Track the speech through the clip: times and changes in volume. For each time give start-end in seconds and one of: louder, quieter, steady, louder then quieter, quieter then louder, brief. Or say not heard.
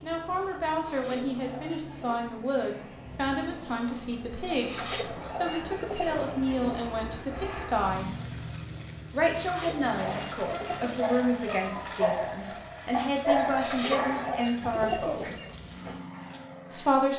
0.0-8.1 steady
9.1-15.3 quieter then louder
16.7-17.1 brief.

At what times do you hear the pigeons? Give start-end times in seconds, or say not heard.
0.8-2.1, 4.5-6.8, 9.3-11.0, 13.4-15.6.